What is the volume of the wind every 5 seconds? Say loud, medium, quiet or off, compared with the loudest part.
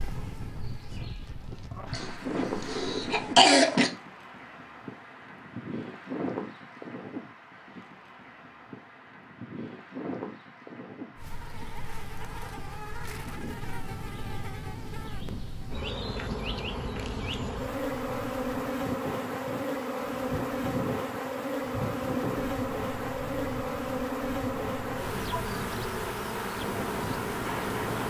loud, loud, medium, medium, loud, loud.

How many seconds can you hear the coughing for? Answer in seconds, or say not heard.
2 s.